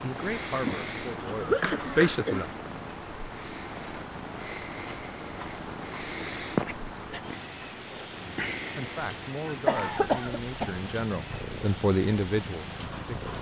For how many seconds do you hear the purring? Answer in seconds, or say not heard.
13 s.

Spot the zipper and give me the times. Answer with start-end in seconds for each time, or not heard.
not heard.